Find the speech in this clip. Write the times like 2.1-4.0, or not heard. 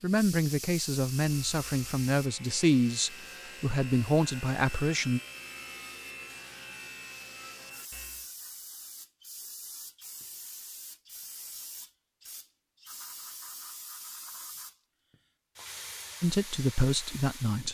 0.0-5.2, 16.2-17.6.